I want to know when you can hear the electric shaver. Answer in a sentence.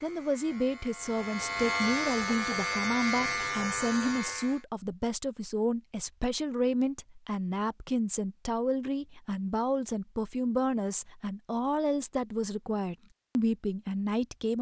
You can hear the electric shaver from 0.0 to 4.6 s.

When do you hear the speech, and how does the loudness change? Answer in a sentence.
You can hear the speech from 0.0 to 14.5 s, at a steady volume.